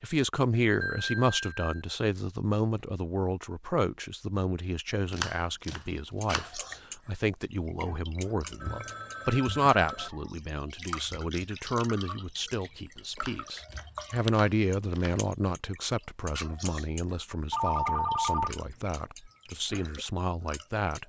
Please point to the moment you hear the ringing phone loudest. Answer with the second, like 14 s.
18 s.